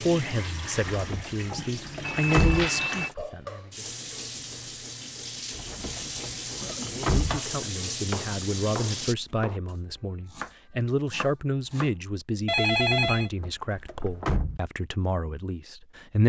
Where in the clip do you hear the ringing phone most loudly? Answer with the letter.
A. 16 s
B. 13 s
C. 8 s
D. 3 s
B.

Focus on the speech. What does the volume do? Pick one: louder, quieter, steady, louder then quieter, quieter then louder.
quieter then louder.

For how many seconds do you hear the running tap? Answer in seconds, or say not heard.
9 s.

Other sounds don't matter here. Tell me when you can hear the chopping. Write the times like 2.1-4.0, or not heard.
7.1-11.9.